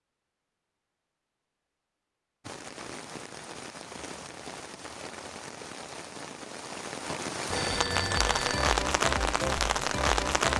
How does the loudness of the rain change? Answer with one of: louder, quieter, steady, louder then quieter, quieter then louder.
louder.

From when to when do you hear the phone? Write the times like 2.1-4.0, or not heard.
7.5-8.7.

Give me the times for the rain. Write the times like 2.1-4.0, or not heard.
2.4-10.5.